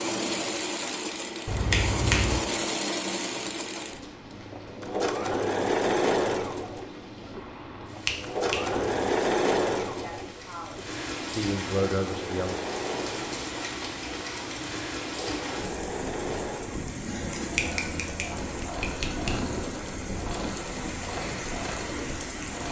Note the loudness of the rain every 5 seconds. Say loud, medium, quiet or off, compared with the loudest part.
medium, medium, loud, loud, loud.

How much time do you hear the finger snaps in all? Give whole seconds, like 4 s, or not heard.
4 s.